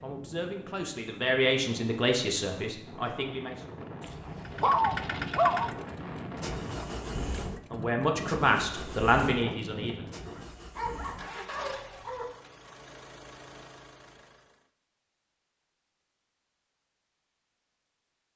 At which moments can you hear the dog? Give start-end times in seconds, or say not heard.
4.0-5.7, 10.2-12.2.